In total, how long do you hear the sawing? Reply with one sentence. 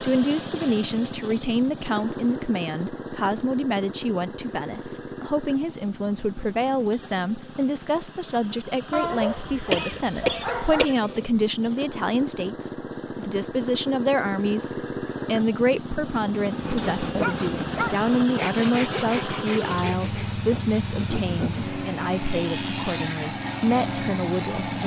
You can hear the sawing for 5 seconds altogether.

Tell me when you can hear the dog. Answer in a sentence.
You can hear the dog from 8.9 to 10.9 s and from 17.1 to 17.9 s.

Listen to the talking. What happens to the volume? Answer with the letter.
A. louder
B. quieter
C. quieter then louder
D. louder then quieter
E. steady
E.